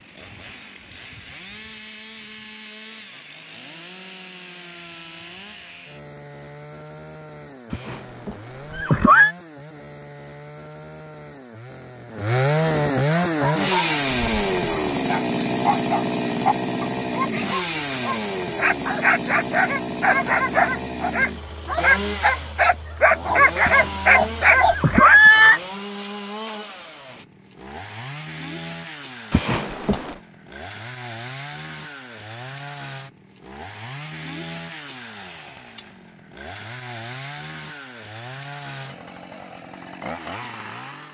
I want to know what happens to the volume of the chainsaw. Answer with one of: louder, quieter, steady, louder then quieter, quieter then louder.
louder then quieter.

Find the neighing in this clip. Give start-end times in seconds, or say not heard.
7.7-9.3, 23.6-25.6, 29.3-30.1.